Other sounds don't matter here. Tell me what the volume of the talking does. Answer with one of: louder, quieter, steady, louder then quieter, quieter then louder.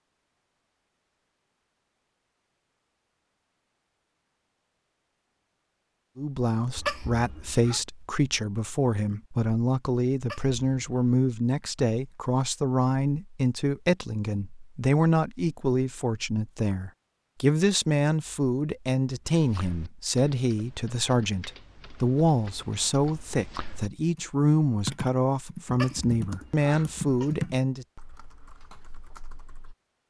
steady.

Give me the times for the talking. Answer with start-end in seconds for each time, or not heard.
6.2-27.9.